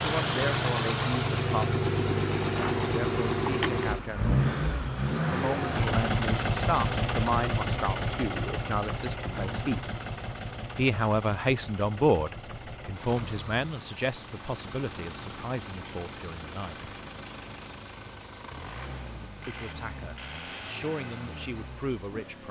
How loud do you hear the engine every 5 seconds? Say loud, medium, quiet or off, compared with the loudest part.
loud, loud, quiet, quiet, quiet.